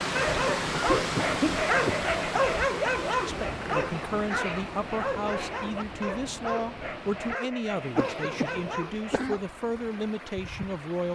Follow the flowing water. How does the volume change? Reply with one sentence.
The loudness of the flowing water goes down.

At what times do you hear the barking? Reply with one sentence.
You can hear the barking from 0.1 to 9.3 s.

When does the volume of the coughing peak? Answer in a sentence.
The loudest moment of the coughing is at 1 second.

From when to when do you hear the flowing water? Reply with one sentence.
The flowing water can be heard from 0.0 to 11.1 s.